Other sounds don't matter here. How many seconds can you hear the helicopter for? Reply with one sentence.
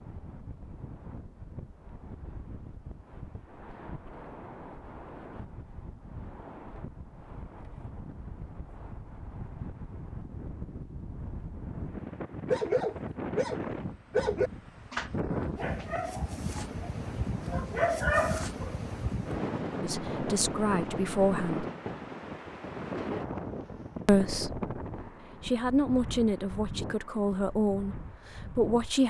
You can't hear the helicopter here.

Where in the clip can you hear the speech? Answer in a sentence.
The speech can be heard from 19.8 to 21.6 s, from 24.1 to 24.6 s and from 25.4 to 29.0 s.